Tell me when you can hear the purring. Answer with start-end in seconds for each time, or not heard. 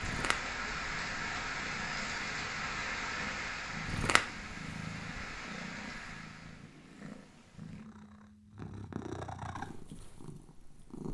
0.0-11.0.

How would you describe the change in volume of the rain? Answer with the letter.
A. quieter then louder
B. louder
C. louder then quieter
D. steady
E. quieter
E.